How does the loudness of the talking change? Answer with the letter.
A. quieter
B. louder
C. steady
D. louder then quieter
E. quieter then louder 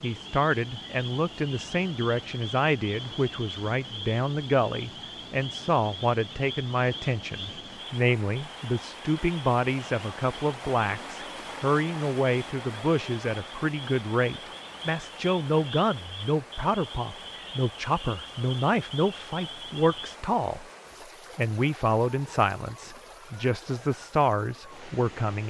C.